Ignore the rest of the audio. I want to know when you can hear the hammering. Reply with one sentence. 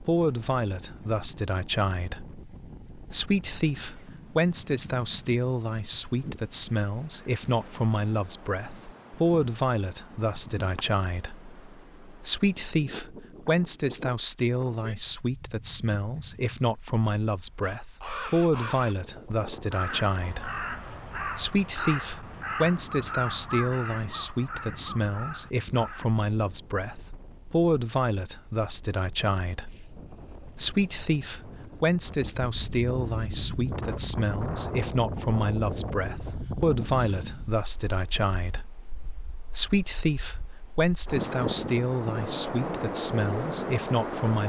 You can't hear the hammering here.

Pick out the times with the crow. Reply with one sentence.
You can hear the crow from 17.6 to 26.1 s.